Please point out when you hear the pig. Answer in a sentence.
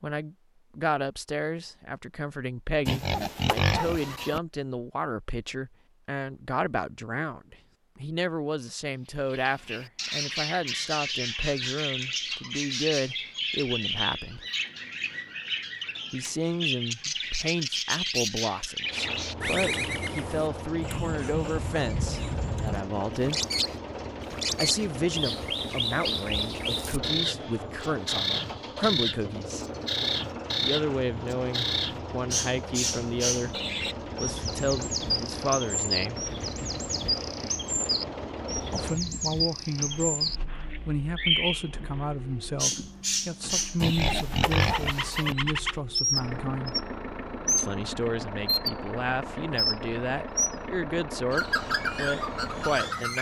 The pig can be heard from 2.9 to 4.4 s and from 43.8 to 45.4 s.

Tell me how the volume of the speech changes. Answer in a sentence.
The volume of the speech stays about the same.